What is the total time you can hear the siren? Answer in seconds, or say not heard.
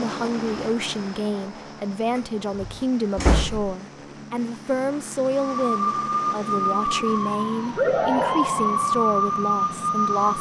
5 s.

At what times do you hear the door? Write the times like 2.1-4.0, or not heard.
2.1-3.8.